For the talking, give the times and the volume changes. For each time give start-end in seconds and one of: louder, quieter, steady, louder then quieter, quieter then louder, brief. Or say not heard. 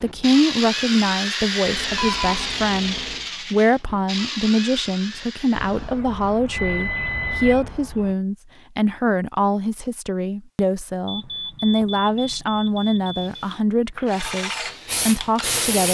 0.0-15.9 steady.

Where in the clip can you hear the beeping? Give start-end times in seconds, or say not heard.
1.6-3.2, 5.5-8.2, 11.1-13.4.